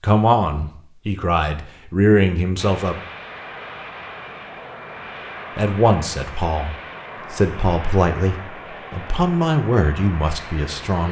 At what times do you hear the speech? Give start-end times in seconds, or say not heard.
0.0-3.0, 5.5-11.0.